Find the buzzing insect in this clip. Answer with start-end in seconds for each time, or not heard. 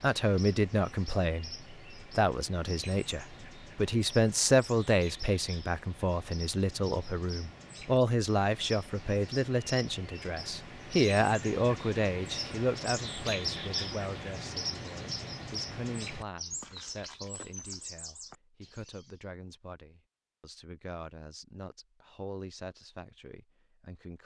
not heard.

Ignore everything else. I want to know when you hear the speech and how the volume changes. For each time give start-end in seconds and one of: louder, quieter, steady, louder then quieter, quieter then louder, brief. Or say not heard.
0.0-24.2 quieter.